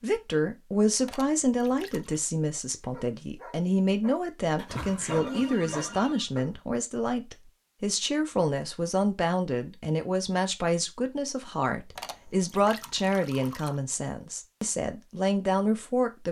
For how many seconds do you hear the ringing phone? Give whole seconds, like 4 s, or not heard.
2 s.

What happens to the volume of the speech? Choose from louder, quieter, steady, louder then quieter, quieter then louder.
steady.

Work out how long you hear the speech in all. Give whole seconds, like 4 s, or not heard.
16 s.